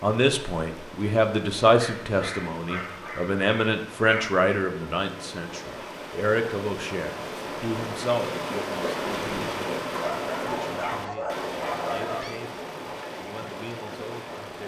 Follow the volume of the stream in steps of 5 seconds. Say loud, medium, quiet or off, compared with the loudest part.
medium, loud, loud.